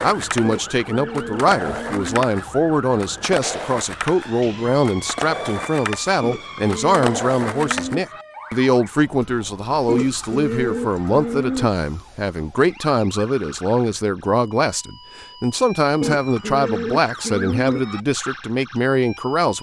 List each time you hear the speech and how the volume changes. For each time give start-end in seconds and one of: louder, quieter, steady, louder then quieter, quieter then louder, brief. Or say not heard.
0.0-19.5 steady.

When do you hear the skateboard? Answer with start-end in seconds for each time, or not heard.
0.0-8.0.